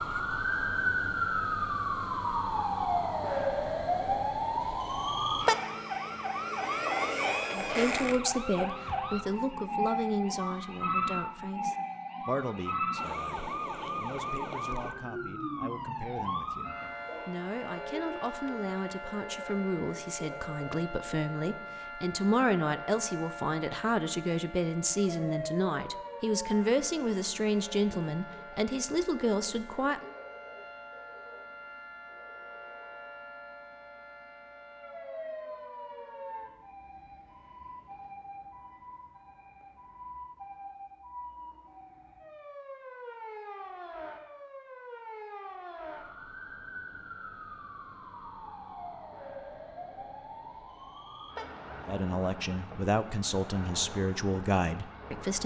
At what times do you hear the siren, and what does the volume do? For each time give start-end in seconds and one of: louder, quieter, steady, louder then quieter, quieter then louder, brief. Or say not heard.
0.0-55.4 quieter.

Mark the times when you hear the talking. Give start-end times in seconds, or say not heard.
7.5-30.1, 51.9-55.4.